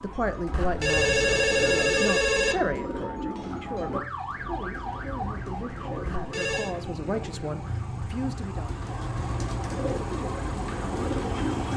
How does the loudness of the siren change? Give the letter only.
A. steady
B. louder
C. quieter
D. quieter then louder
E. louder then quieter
B.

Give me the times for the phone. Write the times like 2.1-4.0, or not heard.
0.5-2.5, 6.0-6.8.